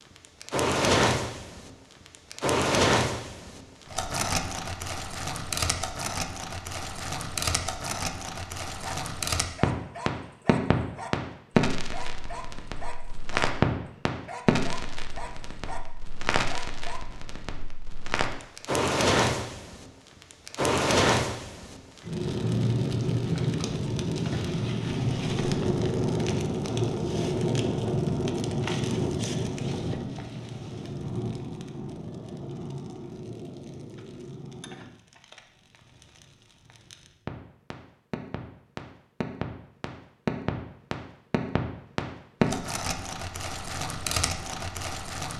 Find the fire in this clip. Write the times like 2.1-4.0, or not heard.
0.2-45.3.